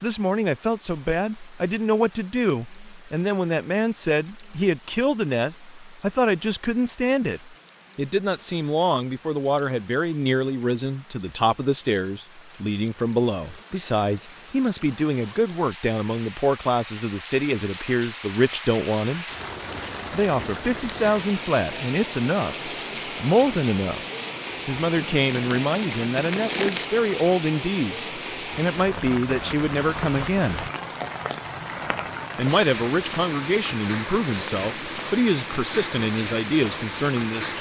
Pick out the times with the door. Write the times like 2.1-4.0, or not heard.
not heard.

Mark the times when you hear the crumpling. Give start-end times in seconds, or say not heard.
25.0-26.9.